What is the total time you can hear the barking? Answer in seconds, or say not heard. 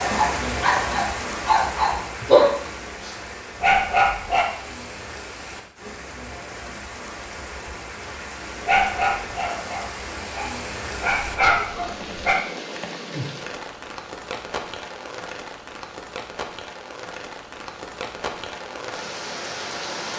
8 s.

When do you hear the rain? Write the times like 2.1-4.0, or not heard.
0.0-20.1.